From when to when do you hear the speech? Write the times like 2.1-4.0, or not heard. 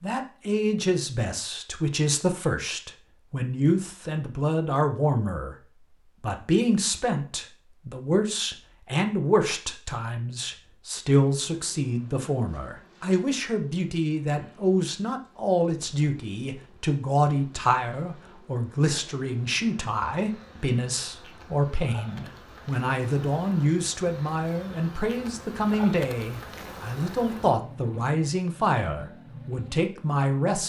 0.0-5.5, 6.2-30.6.